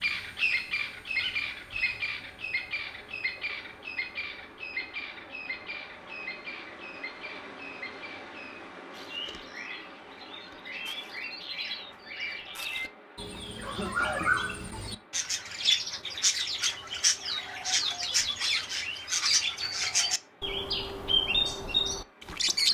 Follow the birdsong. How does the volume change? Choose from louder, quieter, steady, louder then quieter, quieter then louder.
quieter then louder.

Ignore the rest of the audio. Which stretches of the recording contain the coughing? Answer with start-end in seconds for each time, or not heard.
13.6-14.4.